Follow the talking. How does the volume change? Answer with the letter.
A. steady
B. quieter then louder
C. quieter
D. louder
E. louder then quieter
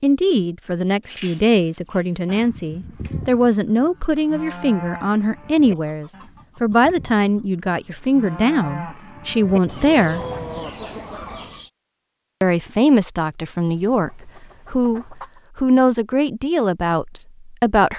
A.